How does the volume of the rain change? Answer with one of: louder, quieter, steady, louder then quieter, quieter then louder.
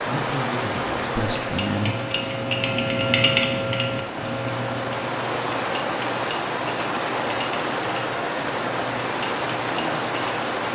quieter then louder.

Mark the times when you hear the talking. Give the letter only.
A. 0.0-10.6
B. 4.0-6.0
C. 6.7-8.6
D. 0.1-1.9
D.